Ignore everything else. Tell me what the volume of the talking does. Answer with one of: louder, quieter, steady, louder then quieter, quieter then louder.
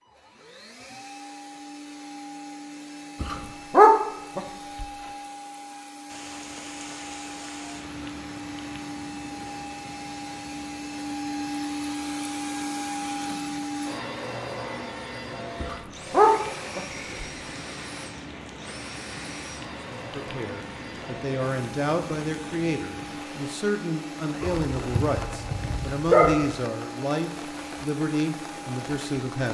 steady.